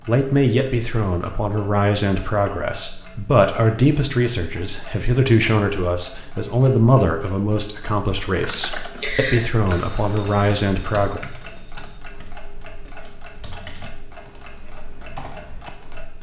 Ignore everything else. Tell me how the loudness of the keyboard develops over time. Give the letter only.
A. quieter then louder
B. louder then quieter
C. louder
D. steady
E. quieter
E.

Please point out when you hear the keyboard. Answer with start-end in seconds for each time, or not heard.
8.3-16.1.